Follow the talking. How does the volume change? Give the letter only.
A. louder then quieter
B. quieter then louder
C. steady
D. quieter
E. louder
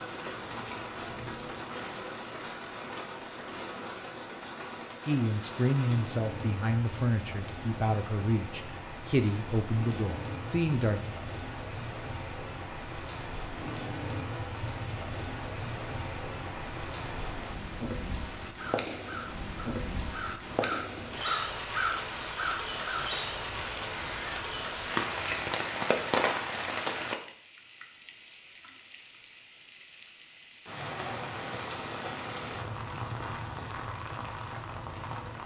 C.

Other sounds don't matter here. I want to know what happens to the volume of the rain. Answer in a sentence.
The volume of the rain goes up, then down.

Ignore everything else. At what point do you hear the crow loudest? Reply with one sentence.
The loudest moment of the crow is at 22 seconds.